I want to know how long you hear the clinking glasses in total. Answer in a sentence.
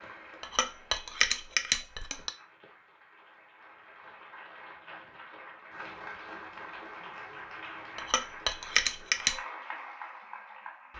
You can hear the clinking glasses for 3 seconds altogether.